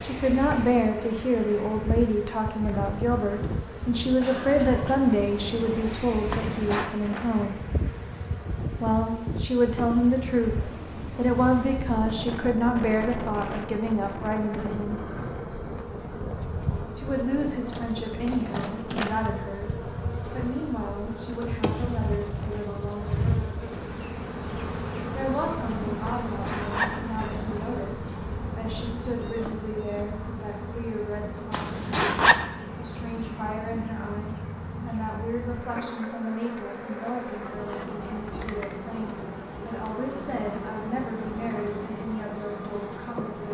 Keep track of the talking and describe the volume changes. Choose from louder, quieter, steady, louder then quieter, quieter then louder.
quieter.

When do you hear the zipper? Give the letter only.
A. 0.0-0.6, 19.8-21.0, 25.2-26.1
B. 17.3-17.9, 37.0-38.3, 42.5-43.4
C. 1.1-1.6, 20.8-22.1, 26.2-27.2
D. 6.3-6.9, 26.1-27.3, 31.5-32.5
D.